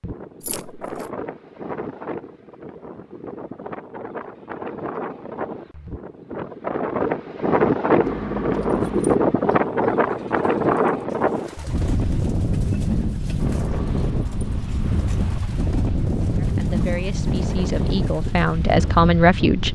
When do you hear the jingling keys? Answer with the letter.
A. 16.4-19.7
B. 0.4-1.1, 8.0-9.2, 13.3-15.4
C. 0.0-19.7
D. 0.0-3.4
B.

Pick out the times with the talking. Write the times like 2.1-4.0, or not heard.
16.4-19.7.